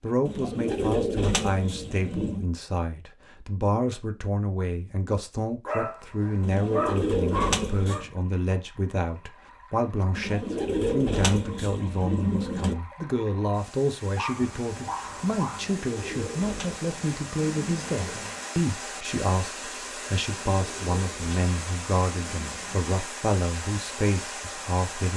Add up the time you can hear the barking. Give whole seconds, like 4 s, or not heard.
4 s.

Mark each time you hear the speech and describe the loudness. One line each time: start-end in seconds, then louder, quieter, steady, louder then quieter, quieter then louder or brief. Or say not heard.
0.0-25.1 steady.